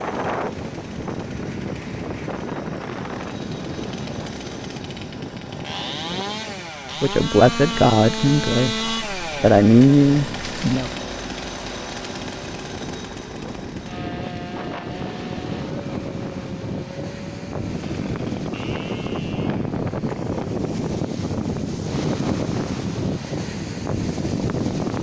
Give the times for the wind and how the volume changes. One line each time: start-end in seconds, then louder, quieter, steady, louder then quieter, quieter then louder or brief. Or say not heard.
0.0-24.9 quieter then louder.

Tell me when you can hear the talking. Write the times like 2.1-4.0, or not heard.
7.0-10.9.